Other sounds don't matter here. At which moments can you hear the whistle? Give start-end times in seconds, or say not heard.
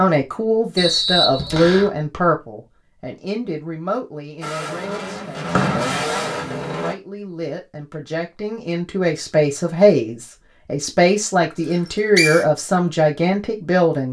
0.8-1.9, 5.5-6.2, 11.7-12.4.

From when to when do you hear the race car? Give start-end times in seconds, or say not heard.
4.4-7.0.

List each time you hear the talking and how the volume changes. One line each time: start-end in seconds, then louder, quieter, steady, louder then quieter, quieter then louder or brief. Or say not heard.
0.0-14.0 quieter then louder.